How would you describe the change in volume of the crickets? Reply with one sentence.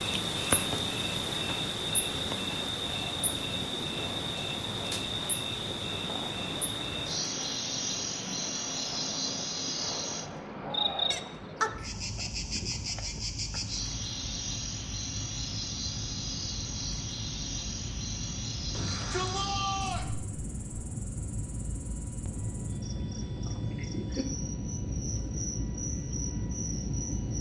The loudness of the crickets goes down.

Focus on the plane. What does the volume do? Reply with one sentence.
The loudness of the plane goes up.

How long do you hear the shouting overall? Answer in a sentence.
You can hear the shouting for 2 seconds altogether.